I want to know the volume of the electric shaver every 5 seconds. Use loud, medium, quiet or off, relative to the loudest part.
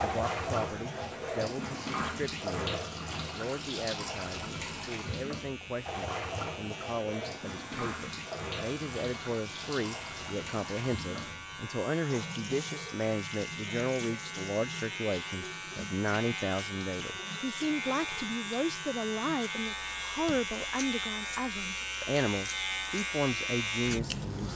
quiet, medium, medium, loud, loud.